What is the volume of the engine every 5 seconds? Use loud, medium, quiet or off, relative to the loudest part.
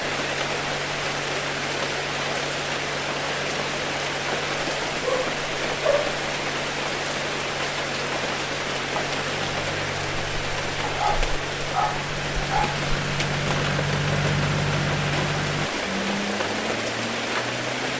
medium, medium, loud, loud.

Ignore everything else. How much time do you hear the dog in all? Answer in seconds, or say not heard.
3 s.